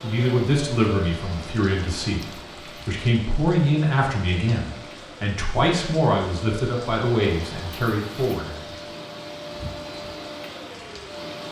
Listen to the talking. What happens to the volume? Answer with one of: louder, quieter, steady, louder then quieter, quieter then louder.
steady.